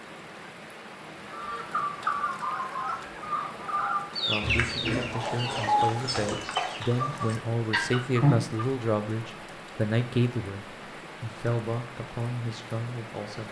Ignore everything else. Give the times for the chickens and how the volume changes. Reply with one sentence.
You can hear the chickens from 1.3 to 8.7 s, at a steady volume.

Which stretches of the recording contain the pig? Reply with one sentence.
The pig can be heard from 4.4 to 6.3 s.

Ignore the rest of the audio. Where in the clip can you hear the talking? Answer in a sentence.
You can hear the talking from 4.2 to 13.4 s.